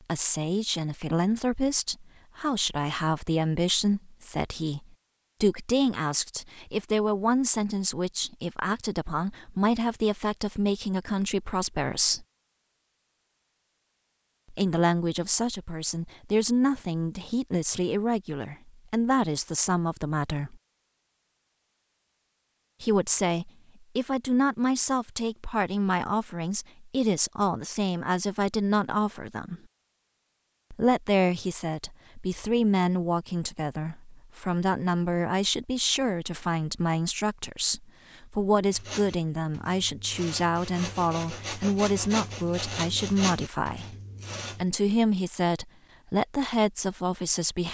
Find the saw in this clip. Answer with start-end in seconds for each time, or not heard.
38.7-44.7.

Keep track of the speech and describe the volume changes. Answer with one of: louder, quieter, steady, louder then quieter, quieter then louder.
steady.